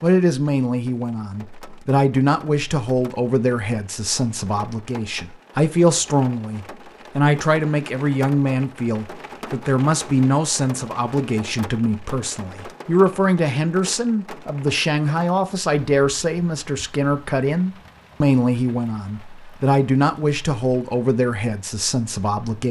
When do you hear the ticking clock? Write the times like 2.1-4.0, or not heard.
not heard.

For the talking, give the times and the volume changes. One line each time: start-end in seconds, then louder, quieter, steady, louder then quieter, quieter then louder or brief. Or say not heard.
0.0-22.6 steady.